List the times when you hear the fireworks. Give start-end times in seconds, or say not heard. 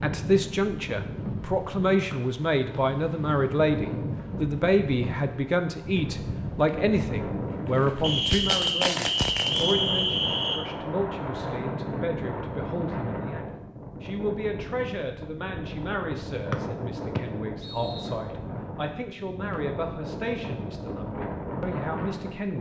7.5-9.8.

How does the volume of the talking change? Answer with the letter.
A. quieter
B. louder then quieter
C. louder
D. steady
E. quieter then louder
A.